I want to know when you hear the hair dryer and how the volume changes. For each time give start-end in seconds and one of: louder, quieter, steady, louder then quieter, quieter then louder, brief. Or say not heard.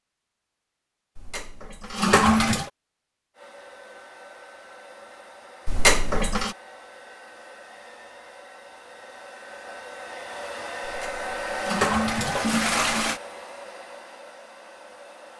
3.4-15.3 louder then quieter.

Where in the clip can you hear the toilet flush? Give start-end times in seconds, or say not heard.
1.1-2.7, 5.7-6.5, 10.8-13.2.